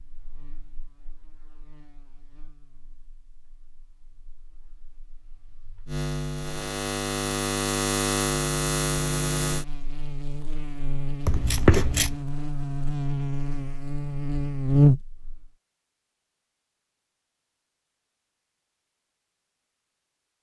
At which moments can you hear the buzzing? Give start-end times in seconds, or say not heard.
0.0-15.5.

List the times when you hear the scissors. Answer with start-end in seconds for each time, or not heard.
11.2-12.2.